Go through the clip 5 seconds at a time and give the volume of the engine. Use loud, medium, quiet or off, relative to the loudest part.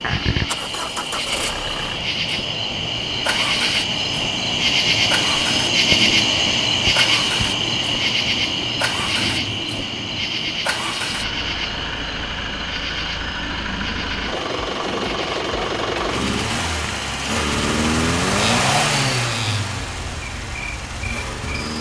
medium, medium, medium, loud, medium.